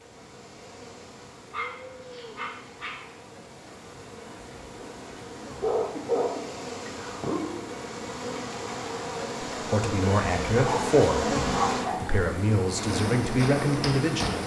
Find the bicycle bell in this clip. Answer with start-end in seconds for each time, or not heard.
not heard.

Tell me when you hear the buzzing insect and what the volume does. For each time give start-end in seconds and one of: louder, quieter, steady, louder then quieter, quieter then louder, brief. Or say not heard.
0.0-14.4 louder.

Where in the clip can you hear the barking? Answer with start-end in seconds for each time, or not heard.
1.5-3.0, 5.5-7.5, 10.6-12.1.